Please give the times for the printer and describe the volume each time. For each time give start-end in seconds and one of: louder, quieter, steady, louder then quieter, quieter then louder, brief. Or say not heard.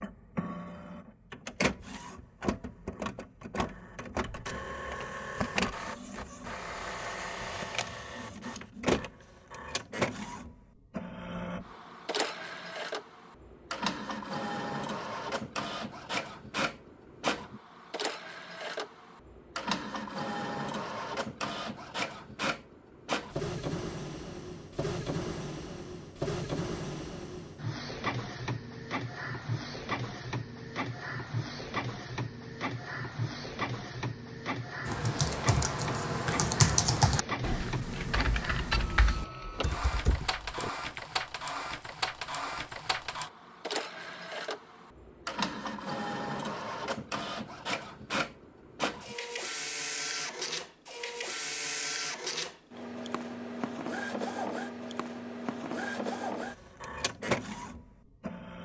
0.0-58.5 steady.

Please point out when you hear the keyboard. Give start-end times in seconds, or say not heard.
34.9-41.0.